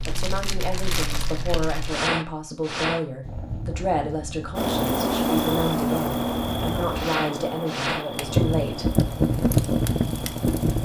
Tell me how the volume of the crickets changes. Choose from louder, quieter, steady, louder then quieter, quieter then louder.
quieter.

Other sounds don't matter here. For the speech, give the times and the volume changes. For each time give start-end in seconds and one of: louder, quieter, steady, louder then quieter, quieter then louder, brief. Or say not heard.
0.1-8.9 steady.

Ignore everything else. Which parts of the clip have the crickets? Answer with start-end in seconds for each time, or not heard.
4.5-10.7.